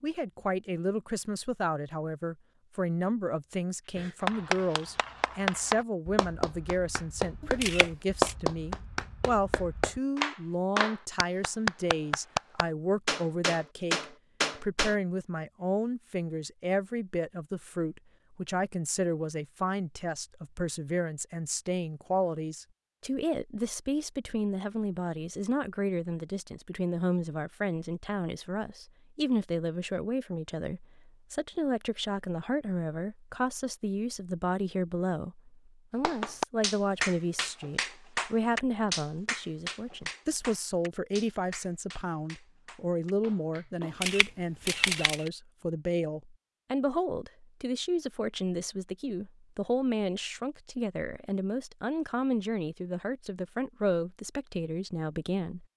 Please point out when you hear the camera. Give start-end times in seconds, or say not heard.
7.4-8.3, 43.8-45.3.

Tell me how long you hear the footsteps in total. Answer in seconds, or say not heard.
not heard.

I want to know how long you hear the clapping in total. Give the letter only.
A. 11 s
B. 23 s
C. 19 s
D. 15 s
C.